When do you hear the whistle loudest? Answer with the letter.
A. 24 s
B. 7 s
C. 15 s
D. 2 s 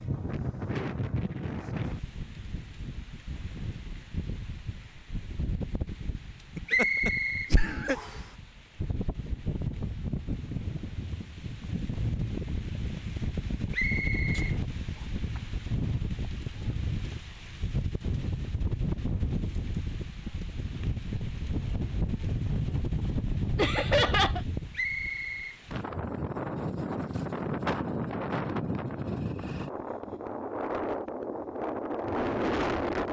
B.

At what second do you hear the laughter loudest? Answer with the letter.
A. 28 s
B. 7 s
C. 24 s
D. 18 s
C.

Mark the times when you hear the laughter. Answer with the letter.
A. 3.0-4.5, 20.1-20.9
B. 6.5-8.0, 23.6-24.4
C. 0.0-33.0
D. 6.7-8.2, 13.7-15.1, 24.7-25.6
B.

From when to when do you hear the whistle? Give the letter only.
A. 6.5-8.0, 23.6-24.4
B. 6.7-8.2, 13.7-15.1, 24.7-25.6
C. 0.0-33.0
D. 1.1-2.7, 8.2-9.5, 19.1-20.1
B.